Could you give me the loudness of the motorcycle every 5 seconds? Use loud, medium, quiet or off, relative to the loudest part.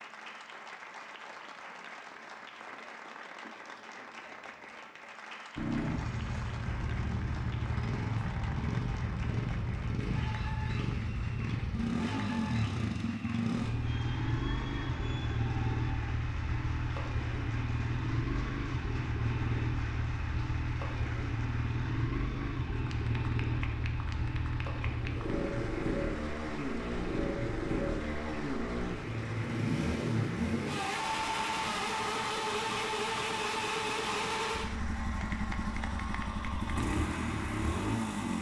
off, loud, loud, loud, loud, loud, loud, loud.